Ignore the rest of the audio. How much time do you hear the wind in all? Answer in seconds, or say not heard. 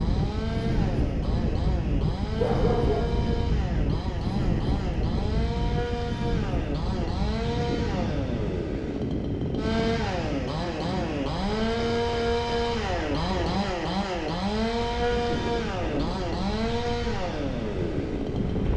19 s.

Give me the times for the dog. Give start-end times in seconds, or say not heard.
2.4-3.2.